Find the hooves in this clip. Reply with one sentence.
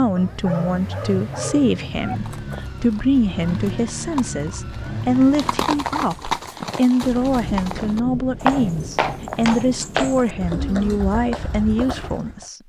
The hooves can be heard from 2.1 to 12.4 s.